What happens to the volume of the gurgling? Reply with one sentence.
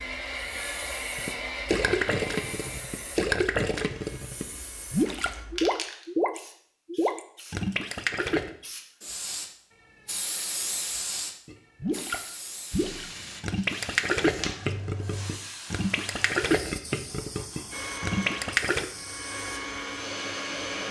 The loudness of the gurgling stays about the same.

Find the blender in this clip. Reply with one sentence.
You can hear the blender from 0.0 to 5.5 s and from 17.7 to 20.8 s.